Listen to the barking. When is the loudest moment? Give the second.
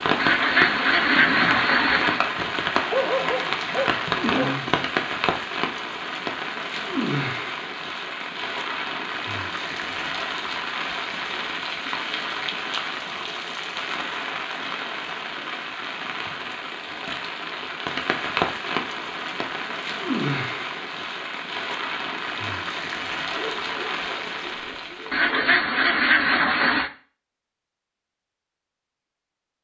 3 s.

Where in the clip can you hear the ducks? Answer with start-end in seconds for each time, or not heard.
0.1-2.2, 25.1-26.9.